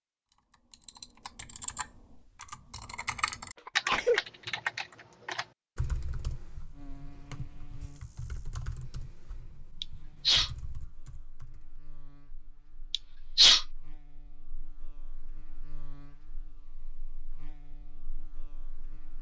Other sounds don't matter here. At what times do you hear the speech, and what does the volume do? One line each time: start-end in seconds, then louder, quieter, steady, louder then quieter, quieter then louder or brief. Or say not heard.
not heard.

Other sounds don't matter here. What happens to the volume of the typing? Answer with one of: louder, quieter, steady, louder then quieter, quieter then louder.
louder then quieter.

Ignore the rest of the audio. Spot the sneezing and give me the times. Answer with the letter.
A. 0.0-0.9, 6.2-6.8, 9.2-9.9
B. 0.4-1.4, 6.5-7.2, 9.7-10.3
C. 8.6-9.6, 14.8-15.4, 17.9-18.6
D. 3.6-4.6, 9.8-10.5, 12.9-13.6
D.